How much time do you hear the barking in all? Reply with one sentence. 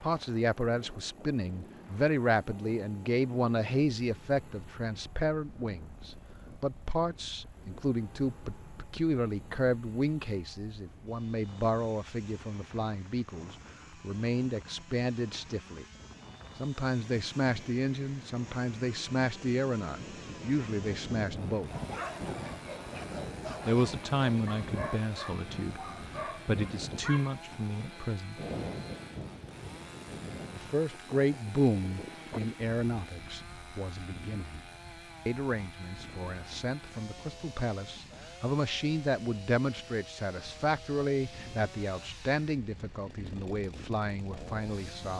You can hear the barking for 6 seconds altogether.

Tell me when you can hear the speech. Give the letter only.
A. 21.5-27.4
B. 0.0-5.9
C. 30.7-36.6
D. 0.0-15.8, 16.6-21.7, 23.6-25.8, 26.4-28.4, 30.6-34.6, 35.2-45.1
D.